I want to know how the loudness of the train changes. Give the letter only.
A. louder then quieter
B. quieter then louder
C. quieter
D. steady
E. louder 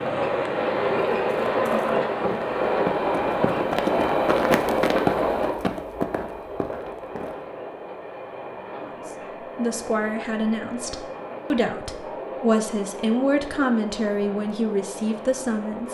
C.